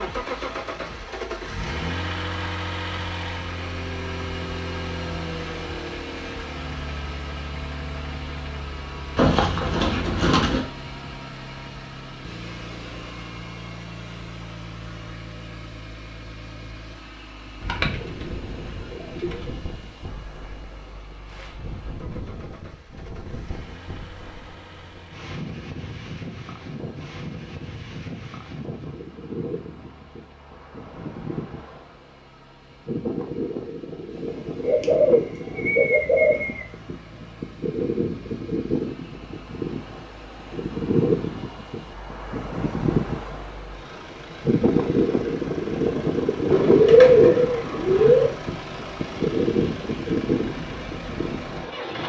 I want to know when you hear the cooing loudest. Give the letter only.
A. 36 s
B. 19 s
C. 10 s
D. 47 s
D.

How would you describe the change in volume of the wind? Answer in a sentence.
The loudness of the wind goes up.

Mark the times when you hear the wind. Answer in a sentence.
The wind can be heard from 18.1 to 52.0 s.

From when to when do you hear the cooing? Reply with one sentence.
You can hear the cooing from 9.2 to 10.7 s, from 17.6 to 19.4 s, from 34.6 to 36.6 s and from 46.5 to 48.3 s.